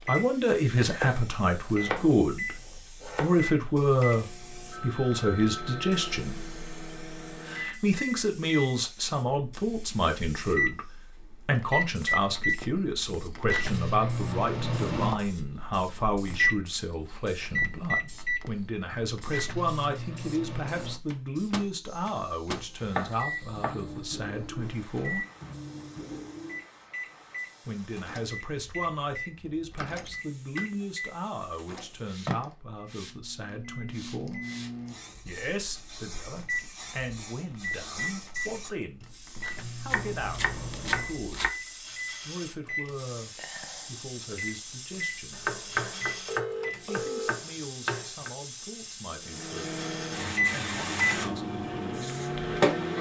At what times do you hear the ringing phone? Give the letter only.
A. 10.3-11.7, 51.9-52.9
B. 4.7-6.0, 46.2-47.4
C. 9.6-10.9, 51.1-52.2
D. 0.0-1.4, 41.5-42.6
B.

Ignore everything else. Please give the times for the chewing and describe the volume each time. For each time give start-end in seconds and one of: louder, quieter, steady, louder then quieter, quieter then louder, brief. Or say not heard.
not heard.